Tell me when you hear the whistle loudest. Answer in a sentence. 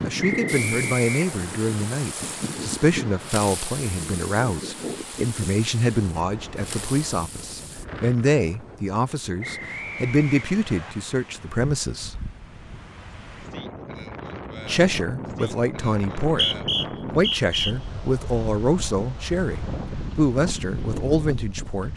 The loudest moment of the whistle is at 17 seconds.